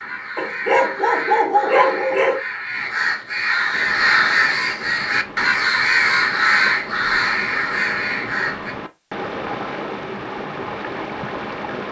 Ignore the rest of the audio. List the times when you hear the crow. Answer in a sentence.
The crow can be heard from 0.0 to 8.8 s.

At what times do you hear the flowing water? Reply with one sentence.
You can hear the flowing water from 3.7 to 11.8 s.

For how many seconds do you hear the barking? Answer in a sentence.
You can hear the barking for 2 seconds altogether.